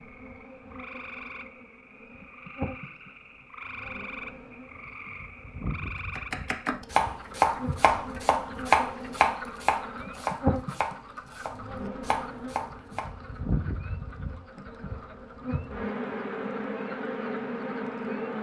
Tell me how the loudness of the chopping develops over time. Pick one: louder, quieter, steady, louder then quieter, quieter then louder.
quieter.